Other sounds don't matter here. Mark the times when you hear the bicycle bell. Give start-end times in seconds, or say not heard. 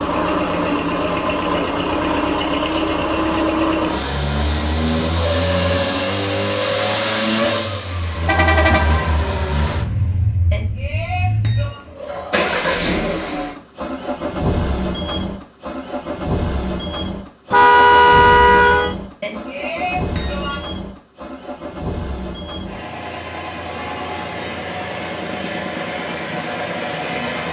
10.5-11.8, 19.2-20.6.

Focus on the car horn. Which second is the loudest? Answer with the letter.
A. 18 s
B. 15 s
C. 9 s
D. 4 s
A.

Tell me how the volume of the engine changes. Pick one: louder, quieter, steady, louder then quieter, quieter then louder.
quieter.